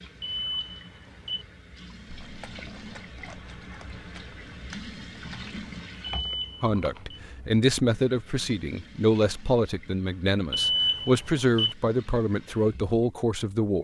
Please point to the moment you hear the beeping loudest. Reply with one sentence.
The volume of the beeping peaks at 11 seconds.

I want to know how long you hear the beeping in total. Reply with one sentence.
The beeping can be heard for 4 seconds in total.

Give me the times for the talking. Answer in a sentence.
You can hear the talking from 6.6 to 13.7 s.